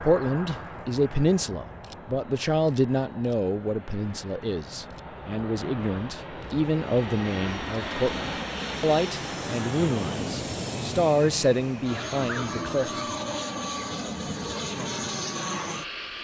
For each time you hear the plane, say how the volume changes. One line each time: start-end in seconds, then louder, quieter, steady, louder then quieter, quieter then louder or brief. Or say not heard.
0.0-16.2 louder.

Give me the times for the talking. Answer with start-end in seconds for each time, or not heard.
0.0-12.9.